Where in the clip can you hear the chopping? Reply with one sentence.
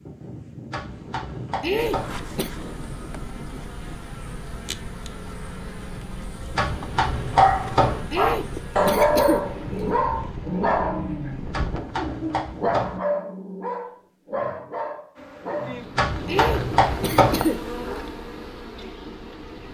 You can hear the chopping from 0.7 to 2.2 s, from 6.5 to 8.0 s, from 11.5 to 13.0 s and from 15.9 to 17.4 s.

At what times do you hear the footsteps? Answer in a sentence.
The footsteps can't be heard in this clip.